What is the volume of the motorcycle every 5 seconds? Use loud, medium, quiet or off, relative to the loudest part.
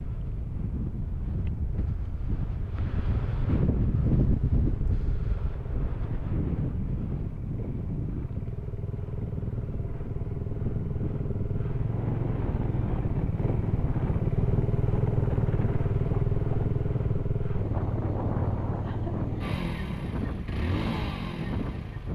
quiet, medium, loud, loud, medium.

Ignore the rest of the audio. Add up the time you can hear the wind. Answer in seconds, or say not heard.
22 s.